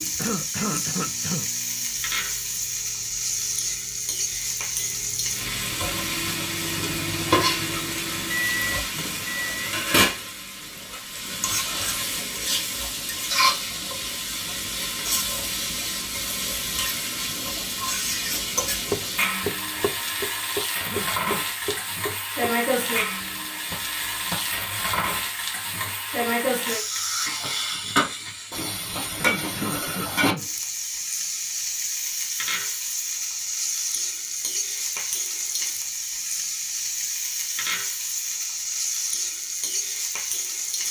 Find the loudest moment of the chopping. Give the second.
19 s.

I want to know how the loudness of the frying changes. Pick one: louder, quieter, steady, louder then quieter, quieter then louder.
steady.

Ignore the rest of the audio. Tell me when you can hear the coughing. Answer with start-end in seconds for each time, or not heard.
0.1-1.5, 20.9-21.4, 29.1-30.5.